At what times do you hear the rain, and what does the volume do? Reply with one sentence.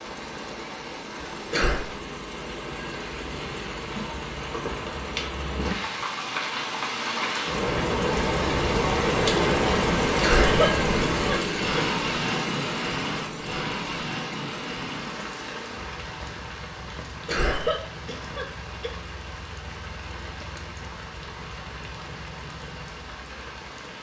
You can hear the rain from 0.0 to 23.9 s, getting louder then quieter.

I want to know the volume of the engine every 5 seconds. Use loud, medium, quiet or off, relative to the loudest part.
medium, loud, loud, quiet, quiet.